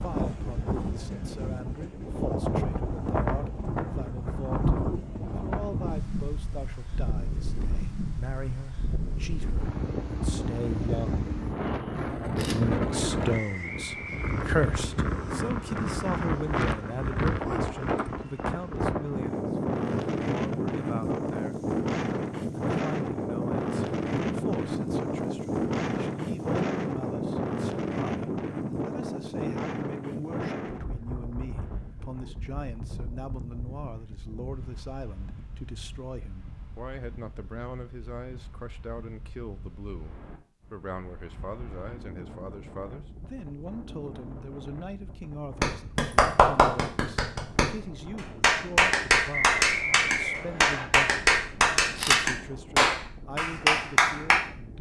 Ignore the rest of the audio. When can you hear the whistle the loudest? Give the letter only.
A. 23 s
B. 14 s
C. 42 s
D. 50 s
D.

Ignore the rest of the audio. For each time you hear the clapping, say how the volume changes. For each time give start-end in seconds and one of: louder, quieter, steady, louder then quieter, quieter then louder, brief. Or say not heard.
45.6-54.4 steady.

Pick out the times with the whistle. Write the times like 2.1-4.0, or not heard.
13.3-14.8, 49.3-50.9.